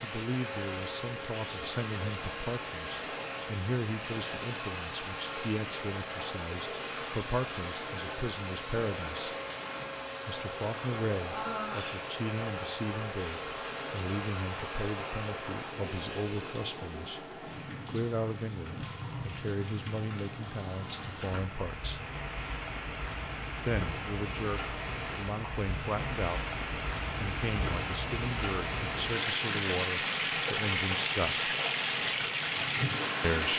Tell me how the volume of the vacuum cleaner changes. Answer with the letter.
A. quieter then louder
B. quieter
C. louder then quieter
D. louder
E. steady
E.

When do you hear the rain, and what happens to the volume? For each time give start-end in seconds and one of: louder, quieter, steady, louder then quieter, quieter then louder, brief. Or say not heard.
0.0-33.5 louder.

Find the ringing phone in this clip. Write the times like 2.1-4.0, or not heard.
not heard.